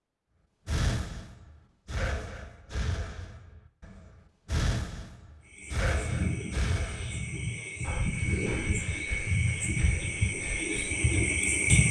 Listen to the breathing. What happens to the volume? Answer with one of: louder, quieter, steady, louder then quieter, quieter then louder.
quieter.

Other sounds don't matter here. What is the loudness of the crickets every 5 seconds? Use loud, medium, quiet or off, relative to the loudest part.
off, medium, loud.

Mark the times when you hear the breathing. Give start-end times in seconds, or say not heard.
0.7-11.0.